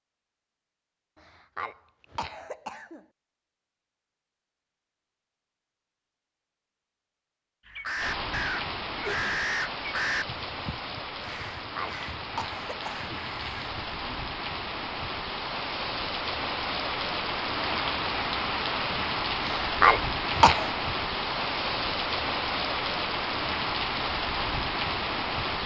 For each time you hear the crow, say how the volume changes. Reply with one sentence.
The crow can be heard from 7.7 to 14.2 s, getting quieter.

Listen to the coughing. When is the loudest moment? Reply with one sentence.
The volume of the coughing peaks at 20 seconds.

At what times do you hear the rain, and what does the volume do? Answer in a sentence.
The rain can be heard from 8.0 to 25.6 s, getting louder.